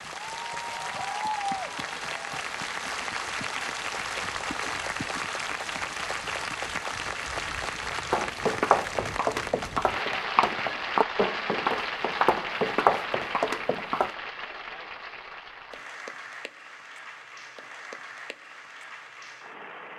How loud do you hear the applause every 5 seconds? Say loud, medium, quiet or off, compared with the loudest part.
loud, loud, loud, medium.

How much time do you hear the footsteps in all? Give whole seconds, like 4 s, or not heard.
6 s.